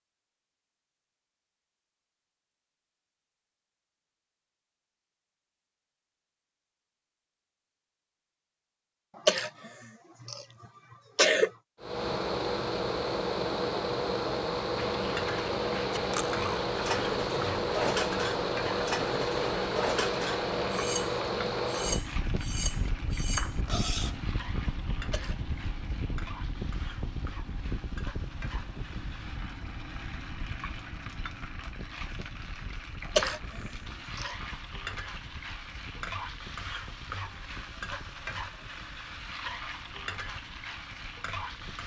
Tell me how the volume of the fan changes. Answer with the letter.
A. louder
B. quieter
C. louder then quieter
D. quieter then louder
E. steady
B.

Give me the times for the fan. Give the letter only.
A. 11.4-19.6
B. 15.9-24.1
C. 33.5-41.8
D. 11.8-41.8
D.